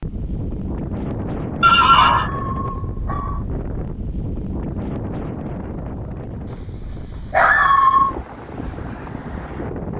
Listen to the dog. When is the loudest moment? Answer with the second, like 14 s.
8 s.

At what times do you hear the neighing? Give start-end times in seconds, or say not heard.
1.6-2.3.